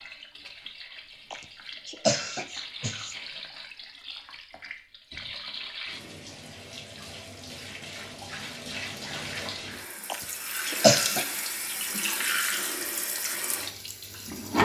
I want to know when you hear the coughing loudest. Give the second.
11 s.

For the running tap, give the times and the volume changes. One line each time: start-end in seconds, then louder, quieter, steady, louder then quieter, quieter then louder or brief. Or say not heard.
0.0-14.6 louder.